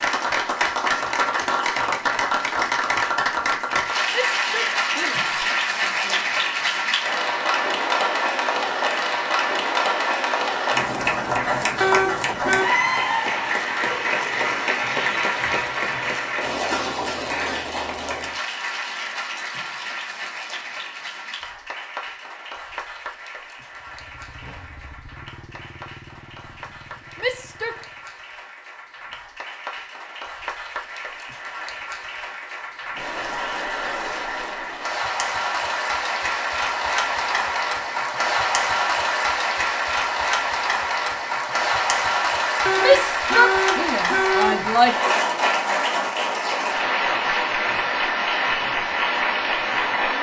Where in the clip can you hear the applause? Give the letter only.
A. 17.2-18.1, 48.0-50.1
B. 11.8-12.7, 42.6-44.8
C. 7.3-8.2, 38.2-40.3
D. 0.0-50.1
D.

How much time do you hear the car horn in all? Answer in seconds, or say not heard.
3 s.